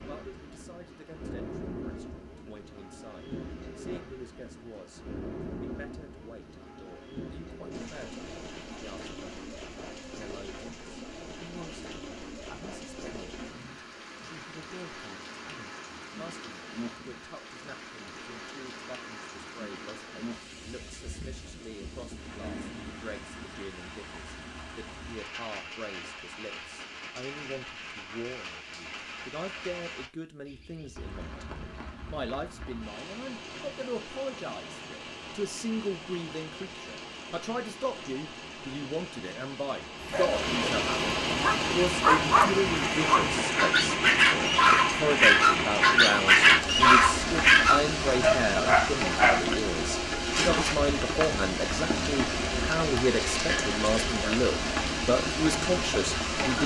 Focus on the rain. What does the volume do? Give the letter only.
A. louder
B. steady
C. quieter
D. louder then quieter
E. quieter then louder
A.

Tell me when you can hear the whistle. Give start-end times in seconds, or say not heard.
not heard.